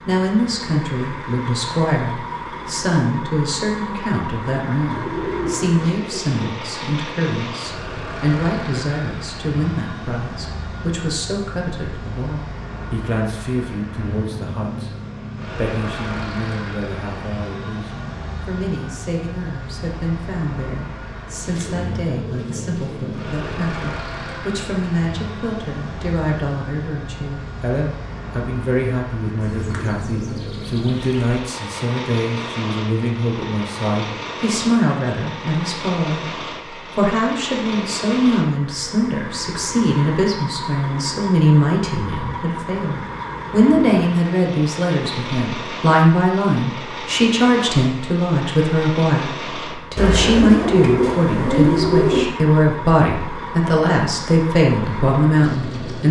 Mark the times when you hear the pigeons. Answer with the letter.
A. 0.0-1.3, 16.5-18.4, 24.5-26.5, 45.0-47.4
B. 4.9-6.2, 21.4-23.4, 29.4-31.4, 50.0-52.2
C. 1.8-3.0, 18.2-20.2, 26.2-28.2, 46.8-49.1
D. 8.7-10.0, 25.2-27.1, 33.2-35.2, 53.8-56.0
B.